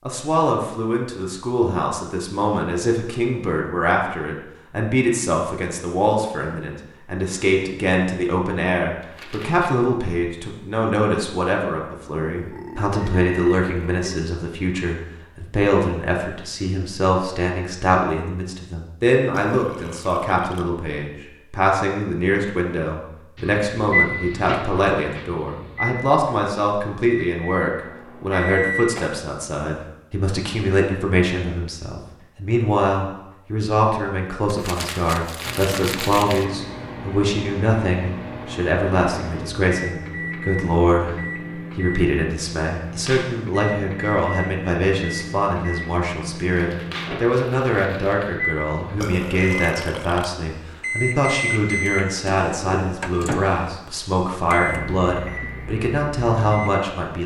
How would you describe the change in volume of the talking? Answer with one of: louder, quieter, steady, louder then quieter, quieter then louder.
steady.